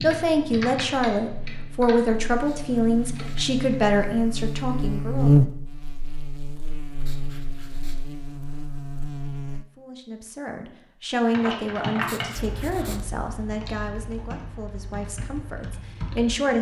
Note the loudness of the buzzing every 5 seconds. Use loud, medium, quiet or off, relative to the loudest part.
medium, loud, off, off.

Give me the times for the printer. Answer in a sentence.
The printer can't be heard in this clip.